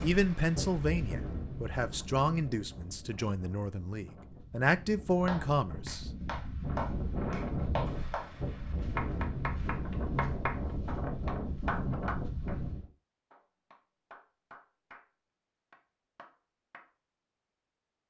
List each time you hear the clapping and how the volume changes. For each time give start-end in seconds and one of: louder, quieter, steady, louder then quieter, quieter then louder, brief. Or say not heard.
5.2-12.7 steady
13.3-15.1 brief
15.7-16.9 brief.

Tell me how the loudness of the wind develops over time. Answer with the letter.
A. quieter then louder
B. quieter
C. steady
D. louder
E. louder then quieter
A.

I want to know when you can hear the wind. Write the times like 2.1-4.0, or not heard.
0.0-12.8.